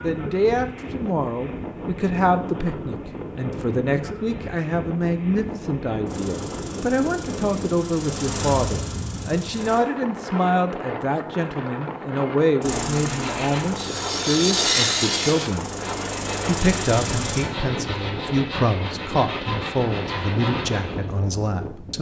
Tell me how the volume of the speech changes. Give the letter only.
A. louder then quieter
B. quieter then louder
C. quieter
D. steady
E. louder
D.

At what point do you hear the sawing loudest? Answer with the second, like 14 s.
15 s.